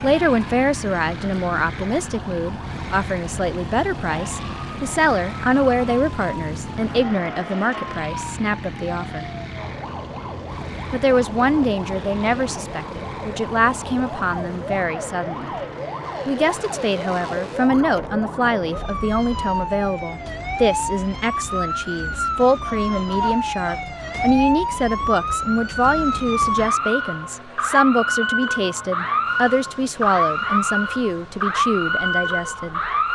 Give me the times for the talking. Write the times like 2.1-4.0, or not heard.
0.0-9.2, 10.9-15.6, 16.2-32.8.